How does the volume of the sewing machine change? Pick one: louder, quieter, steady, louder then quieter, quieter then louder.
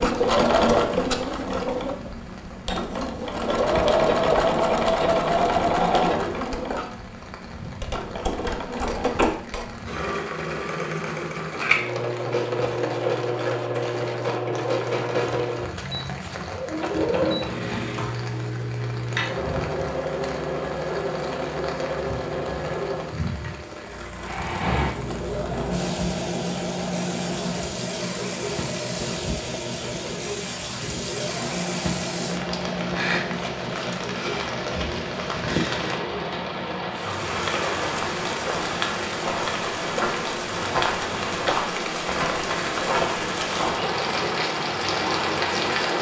quieter.